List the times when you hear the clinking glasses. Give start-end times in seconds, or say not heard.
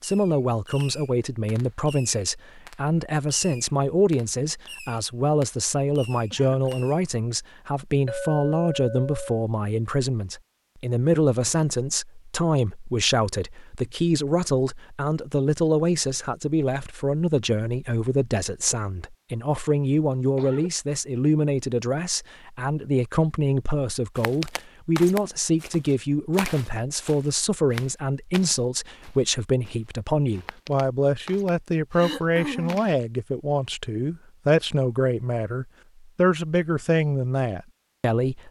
8.1-9.4.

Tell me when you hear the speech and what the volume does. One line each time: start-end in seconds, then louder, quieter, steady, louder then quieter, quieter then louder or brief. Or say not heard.
0.0-38.4 steady.